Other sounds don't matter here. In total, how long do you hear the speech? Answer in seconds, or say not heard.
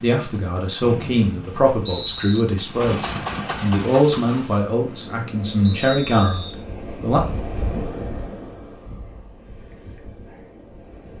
7 s.